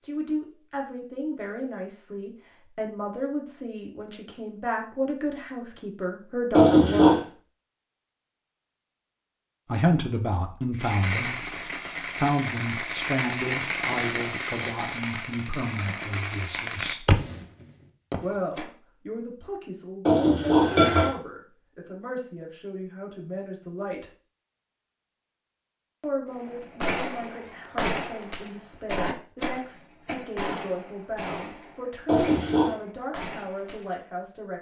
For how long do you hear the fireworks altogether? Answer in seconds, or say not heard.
16 s.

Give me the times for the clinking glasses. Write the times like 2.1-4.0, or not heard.
6.5-7.2, 20.1-21.1, 32.0-32.8.